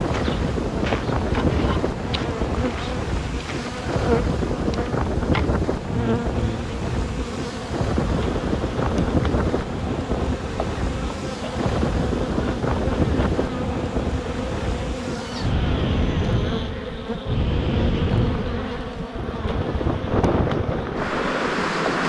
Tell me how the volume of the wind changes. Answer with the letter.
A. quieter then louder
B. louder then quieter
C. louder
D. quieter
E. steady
E.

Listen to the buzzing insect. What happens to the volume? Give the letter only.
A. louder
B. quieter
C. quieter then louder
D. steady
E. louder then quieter
D.